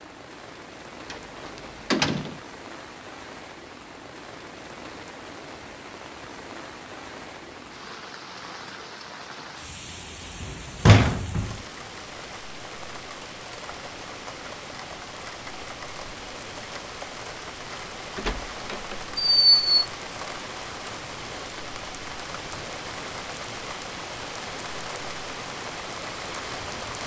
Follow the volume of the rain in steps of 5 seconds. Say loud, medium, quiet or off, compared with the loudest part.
medium, medium, medium, loud, loud, loud.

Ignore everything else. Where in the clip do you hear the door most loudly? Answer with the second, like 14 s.
11 s.